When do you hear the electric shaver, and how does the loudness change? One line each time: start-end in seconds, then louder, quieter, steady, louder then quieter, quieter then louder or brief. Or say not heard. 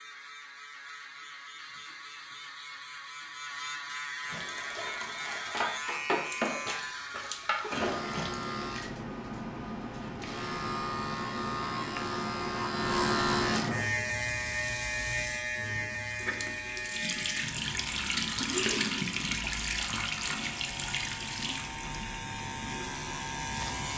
0.0-23.9 louder then quieter.